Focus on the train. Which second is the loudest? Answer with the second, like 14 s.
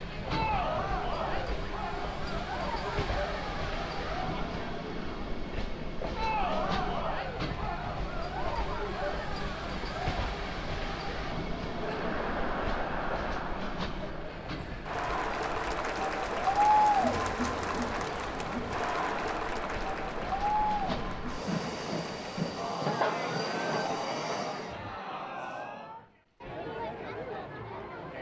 23 s.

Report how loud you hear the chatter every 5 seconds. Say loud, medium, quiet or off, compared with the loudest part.
medium, medium, medium, loud, medium, medium.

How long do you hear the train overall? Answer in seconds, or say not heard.
25 s.